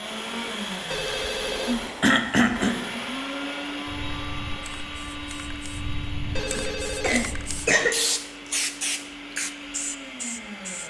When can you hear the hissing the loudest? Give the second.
8 s.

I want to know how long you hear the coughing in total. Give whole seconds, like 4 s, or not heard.
2 s.